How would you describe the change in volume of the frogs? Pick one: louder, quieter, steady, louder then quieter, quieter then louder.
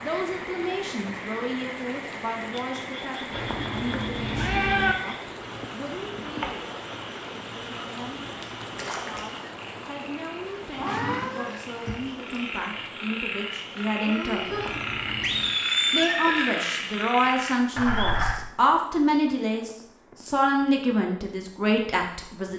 louder.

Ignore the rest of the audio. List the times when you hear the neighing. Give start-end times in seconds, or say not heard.
4.2-4.7, 10.4-12.4, 15.2-16.6.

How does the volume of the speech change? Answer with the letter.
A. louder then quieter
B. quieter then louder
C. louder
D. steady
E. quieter
B.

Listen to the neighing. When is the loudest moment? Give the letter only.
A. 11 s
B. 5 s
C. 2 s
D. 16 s
D.